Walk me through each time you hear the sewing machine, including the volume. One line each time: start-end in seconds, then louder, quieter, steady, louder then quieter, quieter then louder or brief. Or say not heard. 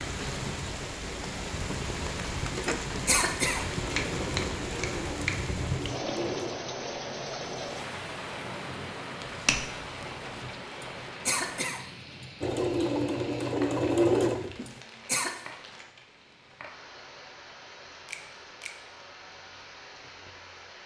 2.5-7.8 louder then quieter
12.4-14.7 brief.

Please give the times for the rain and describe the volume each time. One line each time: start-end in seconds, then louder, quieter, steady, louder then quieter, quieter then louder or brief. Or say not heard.
0.0-20.8 quieter.